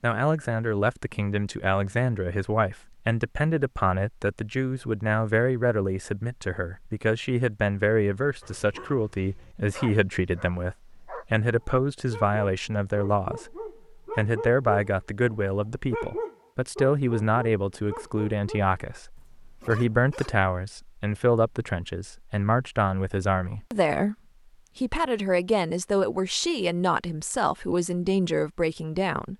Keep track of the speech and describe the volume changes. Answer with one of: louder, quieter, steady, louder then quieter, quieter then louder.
steady.